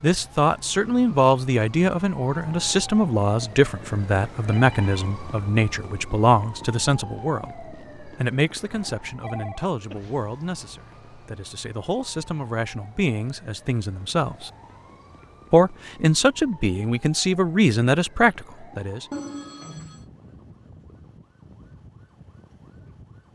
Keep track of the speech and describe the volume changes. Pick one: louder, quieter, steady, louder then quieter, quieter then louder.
quieter then louder.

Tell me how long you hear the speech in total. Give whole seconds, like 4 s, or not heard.
18 s.